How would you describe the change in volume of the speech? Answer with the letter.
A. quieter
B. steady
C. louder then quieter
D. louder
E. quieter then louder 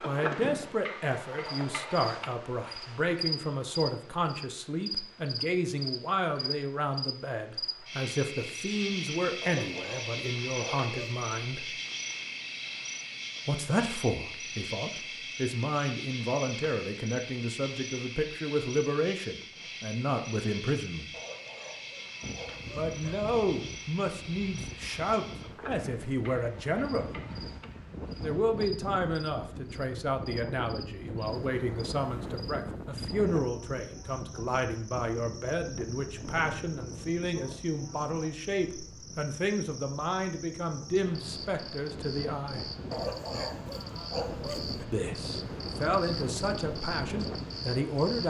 B.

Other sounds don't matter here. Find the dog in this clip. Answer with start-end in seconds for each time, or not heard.
9.4-11.3, 21.1-23.1, 42.9-44.9.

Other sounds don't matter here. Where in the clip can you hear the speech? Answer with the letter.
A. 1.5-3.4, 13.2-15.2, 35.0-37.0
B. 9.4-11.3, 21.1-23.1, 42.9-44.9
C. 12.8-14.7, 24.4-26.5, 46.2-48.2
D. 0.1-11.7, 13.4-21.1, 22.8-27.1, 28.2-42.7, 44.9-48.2
D.